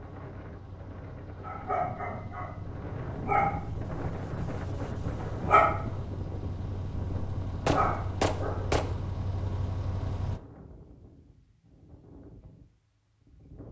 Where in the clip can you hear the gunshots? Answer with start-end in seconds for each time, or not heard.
7.7-8.9.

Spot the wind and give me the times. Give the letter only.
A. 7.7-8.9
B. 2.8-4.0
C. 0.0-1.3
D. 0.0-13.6
D.